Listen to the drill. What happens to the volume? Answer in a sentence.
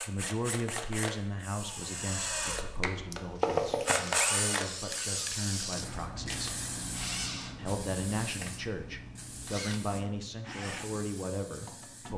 The volume of the drill goes up, then down.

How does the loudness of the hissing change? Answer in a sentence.
The loudness of the hissing goes down.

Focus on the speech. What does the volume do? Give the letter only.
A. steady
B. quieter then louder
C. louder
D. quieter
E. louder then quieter
B.